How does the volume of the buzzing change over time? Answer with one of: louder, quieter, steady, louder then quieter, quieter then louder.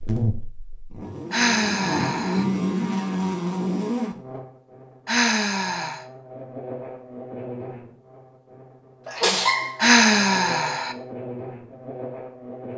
quieter then louder.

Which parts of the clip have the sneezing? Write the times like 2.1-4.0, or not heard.
9.1-10.0.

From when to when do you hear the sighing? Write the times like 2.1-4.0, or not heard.
1.3-2.5, 5.0-6.0, 9.8-10.9.